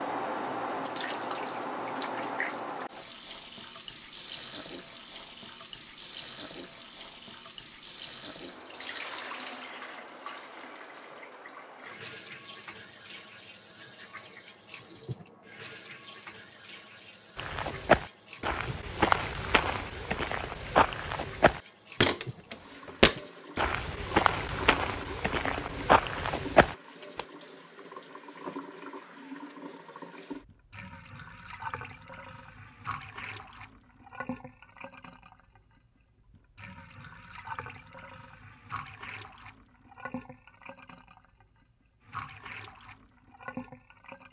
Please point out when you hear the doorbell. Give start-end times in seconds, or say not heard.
not heard.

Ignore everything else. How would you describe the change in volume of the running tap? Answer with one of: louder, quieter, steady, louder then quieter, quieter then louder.
quieter.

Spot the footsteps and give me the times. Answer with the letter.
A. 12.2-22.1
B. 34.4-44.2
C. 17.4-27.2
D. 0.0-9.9
C.